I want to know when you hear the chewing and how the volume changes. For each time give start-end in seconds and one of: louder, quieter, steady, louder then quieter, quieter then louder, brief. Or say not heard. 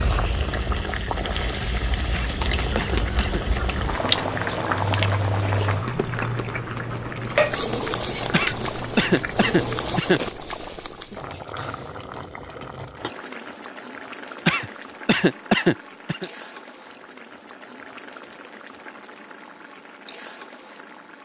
2.2-10.8 quieter.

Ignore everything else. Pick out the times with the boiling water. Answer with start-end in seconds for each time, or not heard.
0.0-21.2.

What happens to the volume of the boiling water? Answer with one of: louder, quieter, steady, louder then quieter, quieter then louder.
quieter.